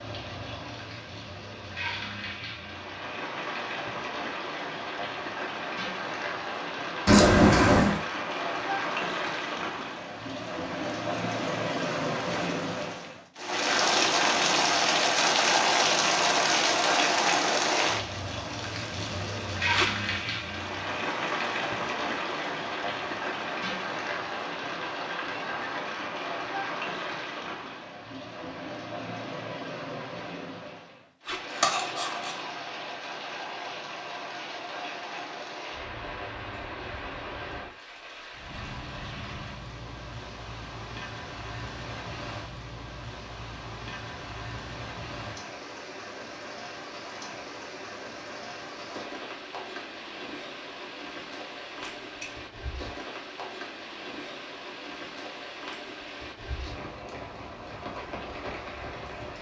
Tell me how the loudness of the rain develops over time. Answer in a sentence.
The loudness of the rain goes up, then down.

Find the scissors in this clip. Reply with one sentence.
The scissors can be heard from 7.0 to 8.0 s, from 31.6 to 32.3 s and from 51.8 to 52.5 s.